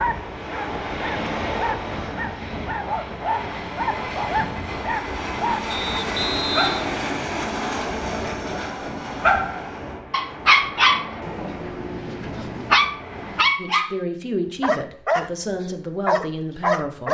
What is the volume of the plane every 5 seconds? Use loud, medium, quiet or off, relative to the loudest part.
loud, loud, medium, off.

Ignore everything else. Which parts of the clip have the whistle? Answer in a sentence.
The whistle can be heard from 5.7 to 7.4 s.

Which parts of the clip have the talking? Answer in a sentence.
The talking can be heard from 13.6 to 17.0 s.